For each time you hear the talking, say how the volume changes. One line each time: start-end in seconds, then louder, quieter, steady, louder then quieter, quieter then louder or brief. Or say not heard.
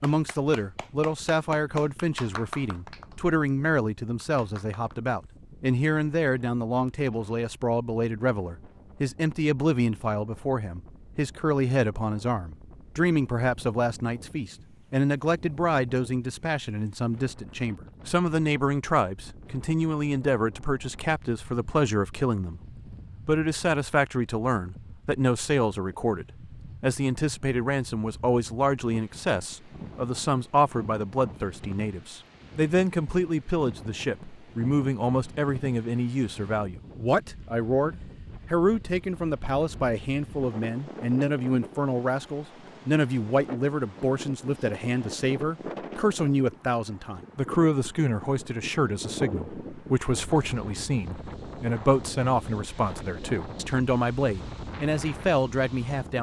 0.0-56.1 steady.